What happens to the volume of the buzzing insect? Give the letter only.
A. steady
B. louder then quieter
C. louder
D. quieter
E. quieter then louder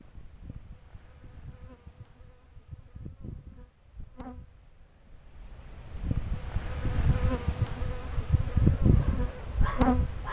C.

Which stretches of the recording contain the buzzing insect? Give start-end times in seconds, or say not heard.
0.0-10.2.